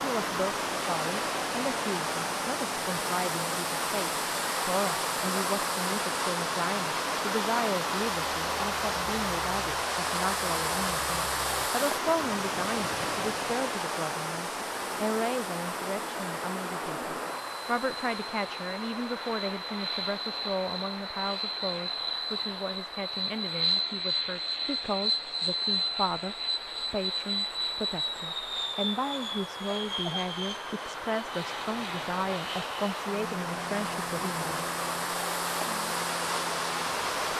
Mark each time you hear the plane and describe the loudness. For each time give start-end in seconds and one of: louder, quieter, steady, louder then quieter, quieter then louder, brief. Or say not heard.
0.1-37.3 louder then quieter.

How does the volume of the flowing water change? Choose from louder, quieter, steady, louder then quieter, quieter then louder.
quieter then louder.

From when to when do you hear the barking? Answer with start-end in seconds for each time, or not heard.
not heard.